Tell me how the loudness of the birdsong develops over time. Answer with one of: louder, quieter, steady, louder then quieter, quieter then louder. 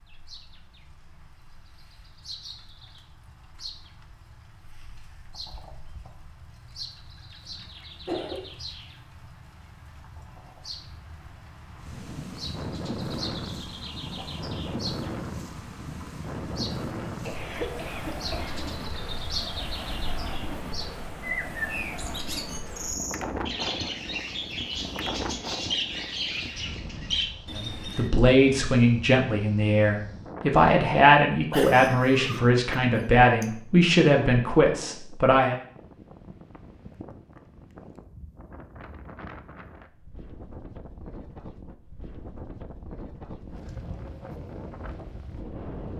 louder.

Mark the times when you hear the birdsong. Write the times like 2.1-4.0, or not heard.
0.0-28.1.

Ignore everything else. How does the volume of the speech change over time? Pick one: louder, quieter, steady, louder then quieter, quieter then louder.
steady.